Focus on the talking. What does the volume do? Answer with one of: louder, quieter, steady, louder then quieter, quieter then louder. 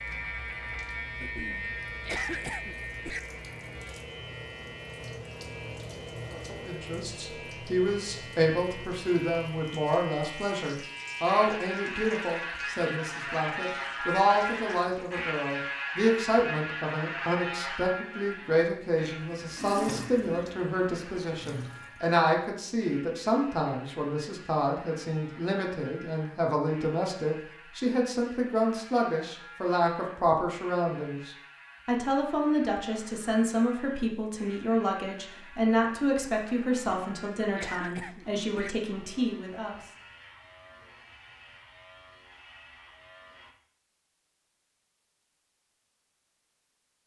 steady.